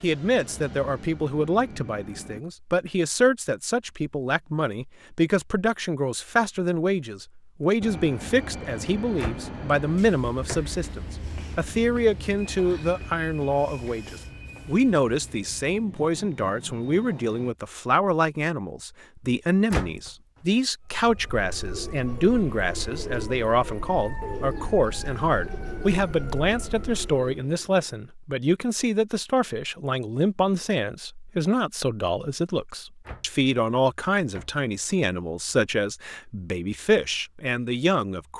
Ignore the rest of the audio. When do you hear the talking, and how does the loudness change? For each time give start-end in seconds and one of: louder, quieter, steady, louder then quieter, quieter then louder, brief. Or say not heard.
0.0-38.3 steady.